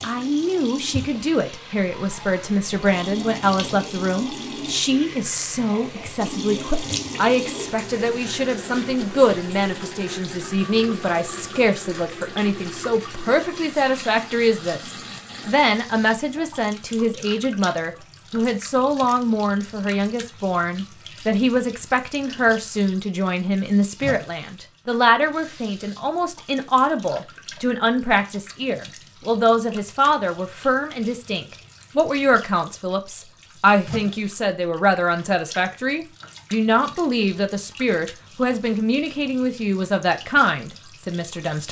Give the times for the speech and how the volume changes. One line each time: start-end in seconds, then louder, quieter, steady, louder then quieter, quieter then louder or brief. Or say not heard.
0.0-41.6 steady.